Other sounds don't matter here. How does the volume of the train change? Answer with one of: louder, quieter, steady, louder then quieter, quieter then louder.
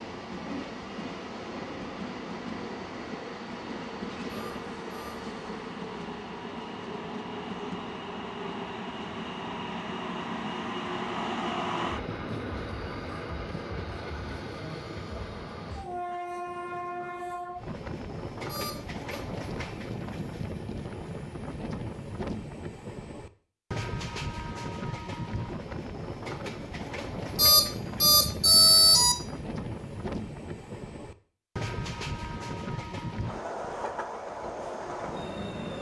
steady.